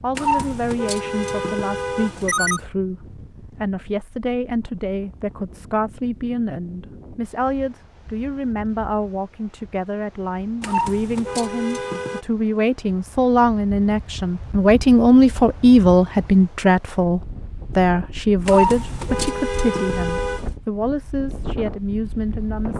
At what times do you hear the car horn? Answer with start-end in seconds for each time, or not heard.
0.1-2.6, 10.6-12.2, 18.4-20.4.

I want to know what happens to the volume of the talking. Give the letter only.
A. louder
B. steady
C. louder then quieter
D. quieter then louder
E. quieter
C.